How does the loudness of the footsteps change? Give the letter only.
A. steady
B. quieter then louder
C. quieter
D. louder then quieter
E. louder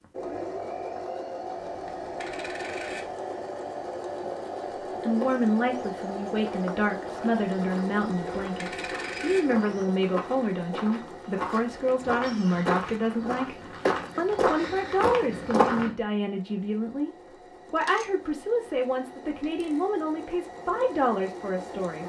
E.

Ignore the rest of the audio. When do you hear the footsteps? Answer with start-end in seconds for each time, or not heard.
5.1-15.9.